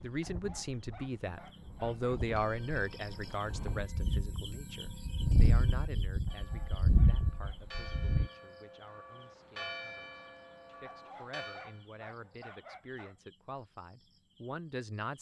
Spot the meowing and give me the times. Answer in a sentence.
You can't hear the meowing here.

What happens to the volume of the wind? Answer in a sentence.
The volume of the wind goes up.